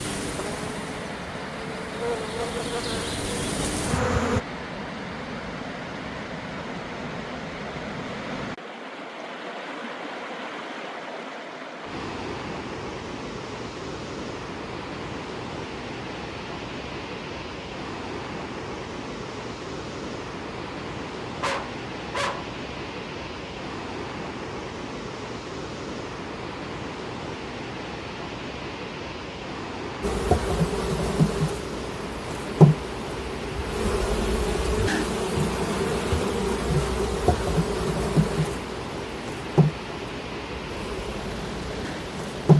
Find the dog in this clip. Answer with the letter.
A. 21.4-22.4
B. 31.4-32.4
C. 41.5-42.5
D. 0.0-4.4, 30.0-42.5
A.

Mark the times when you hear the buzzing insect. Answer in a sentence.
You can hear the buzzing insect from 0.0 to 4.4 s and from 30.0 to 42.5 s.